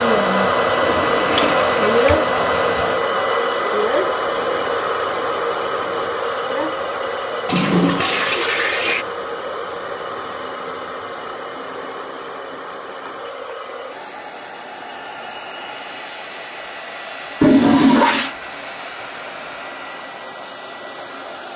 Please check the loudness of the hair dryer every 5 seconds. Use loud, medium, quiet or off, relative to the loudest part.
loud, medium, quiet, quiet, quiet.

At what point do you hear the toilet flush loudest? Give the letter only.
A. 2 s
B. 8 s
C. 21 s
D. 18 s
D.